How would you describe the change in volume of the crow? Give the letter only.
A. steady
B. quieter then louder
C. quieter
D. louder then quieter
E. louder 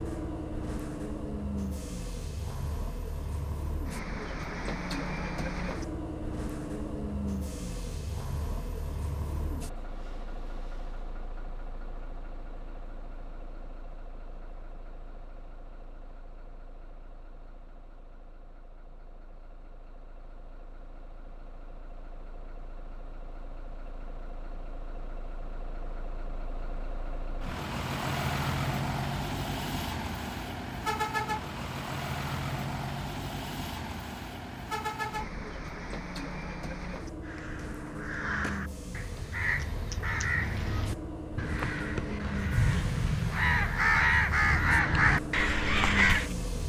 E.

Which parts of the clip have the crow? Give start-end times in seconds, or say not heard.
37.2-46.4.